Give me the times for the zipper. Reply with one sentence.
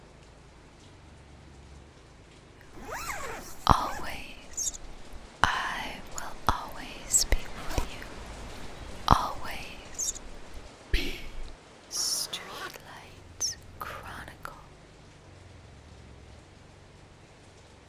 The zipper can be heard from 2.7 to 4.2 s, from 7.2 to 9.1 s and from 11.9 to 12.9 s.